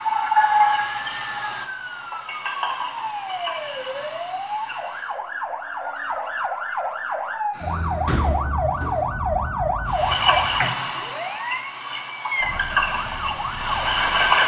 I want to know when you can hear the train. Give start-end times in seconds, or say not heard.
0.0-5.2, 9.9-14.4.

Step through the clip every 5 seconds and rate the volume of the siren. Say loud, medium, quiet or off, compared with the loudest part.
medium, loud, loud.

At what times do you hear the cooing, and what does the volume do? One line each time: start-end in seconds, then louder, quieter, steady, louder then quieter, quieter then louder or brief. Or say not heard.
not heard.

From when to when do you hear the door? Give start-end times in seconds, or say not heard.
7.5-9.0.